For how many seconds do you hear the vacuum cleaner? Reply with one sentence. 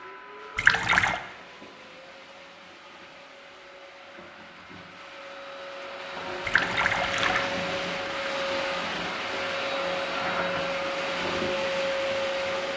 You can hear the vacuum cleaner for 13 seconds altogether.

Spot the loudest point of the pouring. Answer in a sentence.
The volume of the pouring peaks at 1 second.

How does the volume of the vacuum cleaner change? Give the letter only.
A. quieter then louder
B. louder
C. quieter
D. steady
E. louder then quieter
B.